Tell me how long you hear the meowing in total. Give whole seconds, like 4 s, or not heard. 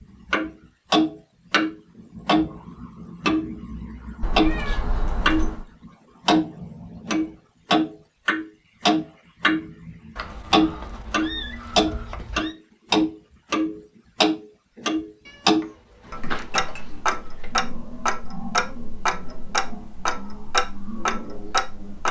6 s.